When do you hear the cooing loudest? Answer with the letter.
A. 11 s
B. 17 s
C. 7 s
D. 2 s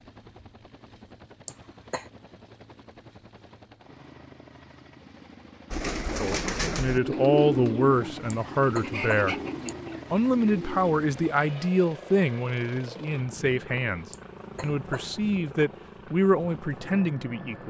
C.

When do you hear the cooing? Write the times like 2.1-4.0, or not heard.
5.7-10.9.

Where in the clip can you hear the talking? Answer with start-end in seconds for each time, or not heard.
6.1-9.3, 10.1-17.6.